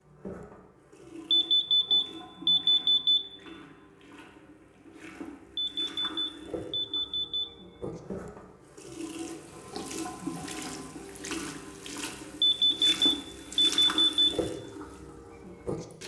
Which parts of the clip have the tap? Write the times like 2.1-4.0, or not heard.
0.0-16.0.